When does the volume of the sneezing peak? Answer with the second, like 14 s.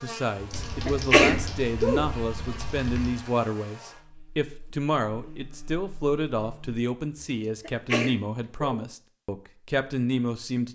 1 s.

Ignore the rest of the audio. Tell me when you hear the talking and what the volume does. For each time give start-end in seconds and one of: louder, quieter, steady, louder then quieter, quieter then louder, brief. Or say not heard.
0.0-10.6 steady.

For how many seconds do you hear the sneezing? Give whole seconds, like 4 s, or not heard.
3 s.